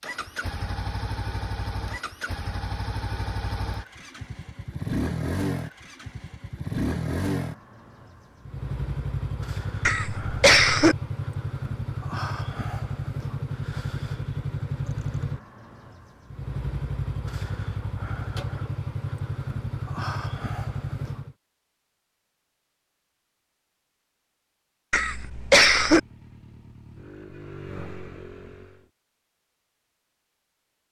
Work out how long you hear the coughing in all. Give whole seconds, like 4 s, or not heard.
2 s.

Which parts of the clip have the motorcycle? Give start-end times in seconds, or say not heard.
0.0-21.4, 25.1-28.9.